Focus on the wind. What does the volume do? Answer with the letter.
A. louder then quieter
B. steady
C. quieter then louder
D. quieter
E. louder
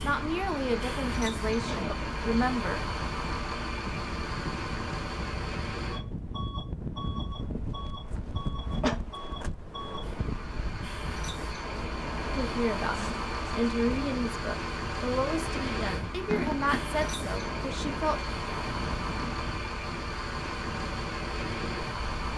B.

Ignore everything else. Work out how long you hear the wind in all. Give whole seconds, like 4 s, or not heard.
22 s.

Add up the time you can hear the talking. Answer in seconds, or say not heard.
9 s.